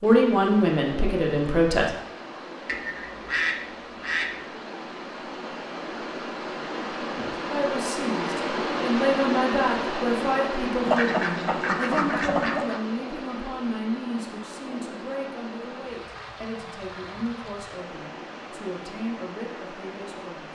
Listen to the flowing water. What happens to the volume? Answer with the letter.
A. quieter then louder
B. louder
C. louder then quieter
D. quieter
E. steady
C.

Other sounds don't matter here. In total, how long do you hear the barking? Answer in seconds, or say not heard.
not heard.